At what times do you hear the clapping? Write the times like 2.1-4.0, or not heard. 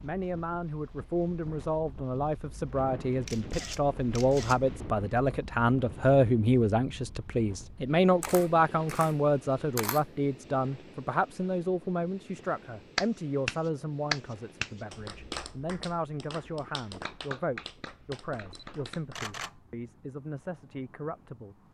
12.9-19.2.